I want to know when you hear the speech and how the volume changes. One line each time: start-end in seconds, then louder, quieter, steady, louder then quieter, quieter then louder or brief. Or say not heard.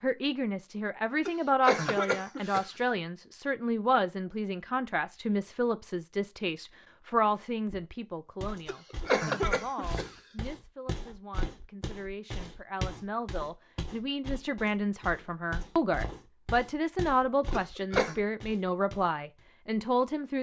0.0-20.3 quieter then louder.